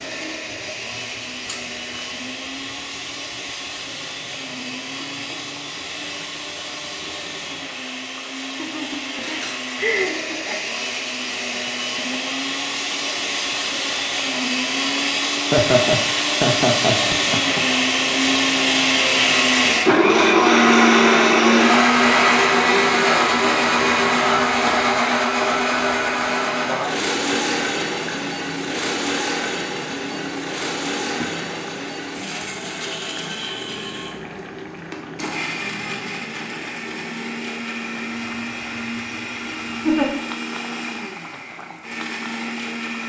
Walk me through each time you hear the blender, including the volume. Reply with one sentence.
You can hear the blender from 0.0 to 43.0 s, getting louder then quieter.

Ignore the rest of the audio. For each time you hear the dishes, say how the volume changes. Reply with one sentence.
The dishes can't be heard in this clip.